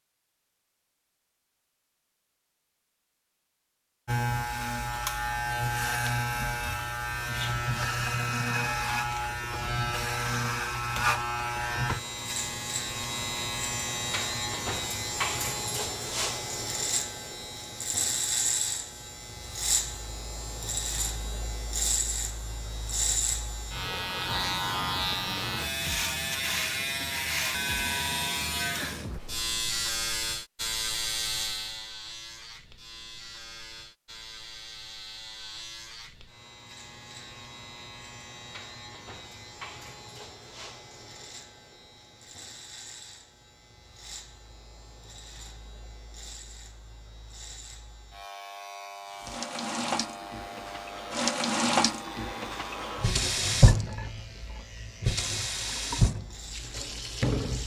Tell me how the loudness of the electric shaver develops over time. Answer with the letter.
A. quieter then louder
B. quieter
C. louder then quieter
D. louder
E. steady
B.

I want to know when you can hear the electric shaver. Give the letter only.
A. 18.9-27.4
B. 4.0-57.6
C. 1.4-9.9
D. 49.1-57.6
B.